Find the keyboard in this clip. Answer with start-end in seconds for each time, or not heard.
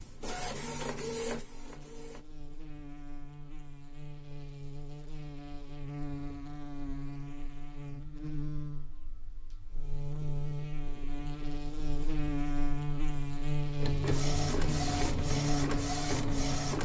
not heard.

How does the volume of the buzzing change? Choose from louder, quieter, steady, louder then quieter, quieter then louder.
louder.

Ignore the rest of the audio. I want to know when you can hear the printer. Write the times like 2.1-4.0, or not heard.
0.0-2.2, 13.8-16.8.